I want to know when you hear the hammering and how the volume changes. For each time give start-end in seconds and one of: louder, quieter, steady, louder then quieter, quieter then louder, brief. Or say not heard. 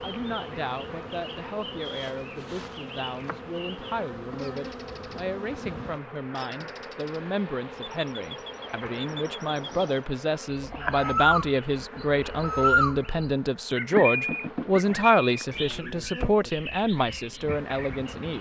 not heard.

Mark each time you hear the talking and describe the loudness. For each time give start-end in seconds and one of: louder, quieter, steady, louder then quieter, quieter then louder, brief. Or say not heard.
0.0-18.3 louder.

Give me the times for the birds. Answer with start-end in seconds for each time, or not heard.
0.0-5.2, 6.3-18.3.